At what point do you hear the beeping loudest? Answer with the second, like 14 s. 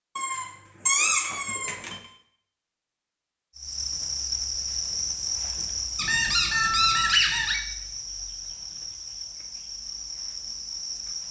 7 s.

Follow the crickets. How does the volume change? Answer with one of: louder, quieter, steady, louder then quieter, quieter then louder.
quieter.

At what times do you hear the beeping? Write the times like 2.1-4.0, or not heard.
1.3-2.2, 6.5-7.2.